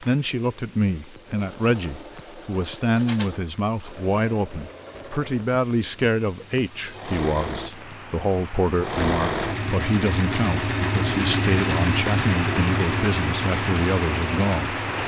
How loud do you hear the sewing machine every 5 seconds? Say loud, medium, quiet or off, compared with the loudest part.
quiet, loud, loud.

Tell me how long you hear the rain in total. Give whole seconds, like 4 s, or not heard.
15 s.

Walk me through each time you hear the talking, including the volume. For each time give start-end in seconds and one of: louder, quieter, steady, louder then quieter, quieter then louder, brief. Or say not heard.
0.0-14.8 steady.